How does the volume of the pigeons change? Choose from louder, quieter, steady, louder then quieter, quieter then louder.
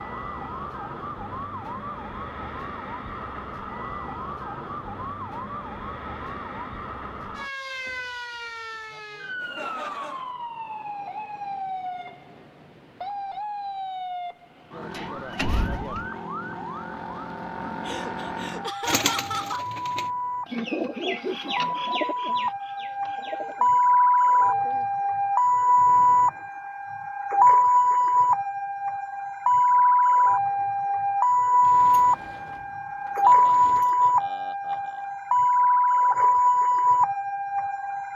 louder then quieter.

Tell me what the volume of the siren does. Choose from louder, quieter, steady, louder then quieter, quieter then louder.
louder.